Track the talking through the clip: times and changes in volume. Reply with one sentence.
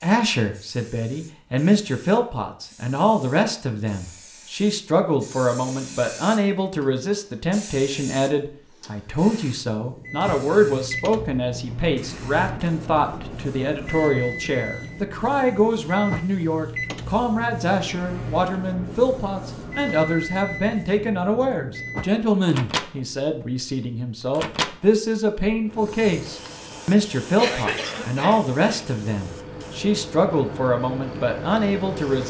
You can hear the talking from 0.0 to 32.2 s, at a steady volume.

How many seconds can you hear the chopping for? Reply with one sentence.
The chopping can't be heard in this clip.